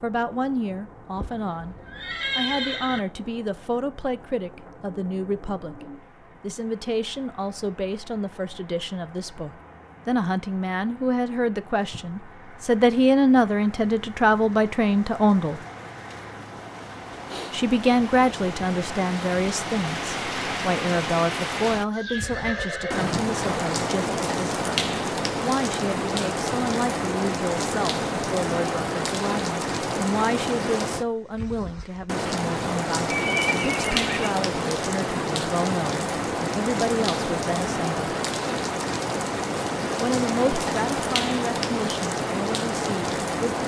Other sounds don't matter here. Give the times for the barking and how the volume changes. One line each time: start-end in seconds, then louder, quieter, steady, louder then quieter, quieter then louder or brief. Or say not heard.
not heard.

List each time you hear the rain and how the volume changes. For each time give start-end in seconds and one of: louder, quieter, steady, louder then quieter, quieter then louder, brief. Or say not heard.
0.0-43.6 louder.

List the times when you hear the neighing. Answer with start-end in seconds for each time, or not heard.
1.1-3.0, 21.9-23.6, 33.1-34.4.